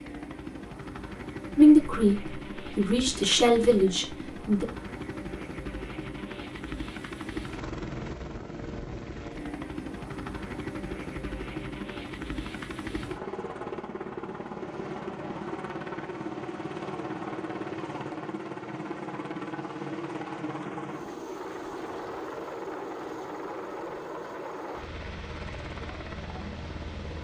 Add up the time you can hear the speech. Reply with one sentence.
The speech can be heard for 3 seconds in total.